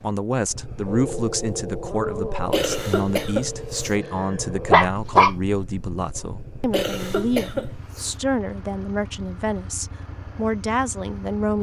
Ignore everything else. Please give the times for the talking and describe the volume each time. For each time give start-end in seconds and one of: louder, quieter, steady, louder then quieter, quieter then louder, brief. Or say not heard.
0.0-11.5 steady.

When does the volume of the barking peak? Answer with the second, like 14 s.
5 s.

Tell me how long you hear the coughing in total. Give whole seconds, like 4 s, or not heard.
3 s.